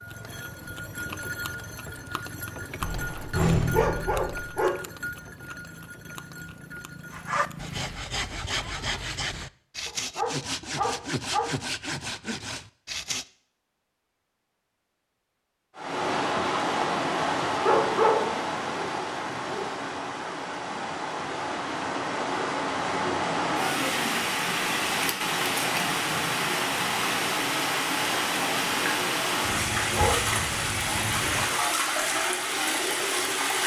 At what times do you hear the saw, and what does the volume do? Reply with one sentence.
The saw can be heard from 7.1 to 13.2 s, at a steady volume.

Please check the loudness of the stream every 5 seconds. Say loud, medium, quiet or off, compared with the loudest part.
off, off, off, loud, loud, loud, loud.